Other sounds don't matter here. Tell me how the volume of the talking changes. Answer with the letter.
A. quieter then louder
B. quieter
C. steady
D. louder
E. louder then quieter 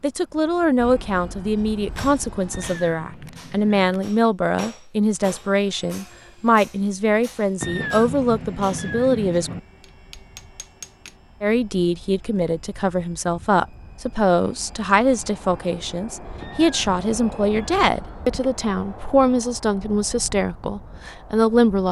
C.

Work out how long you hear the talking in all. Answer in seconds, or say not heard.
20 s.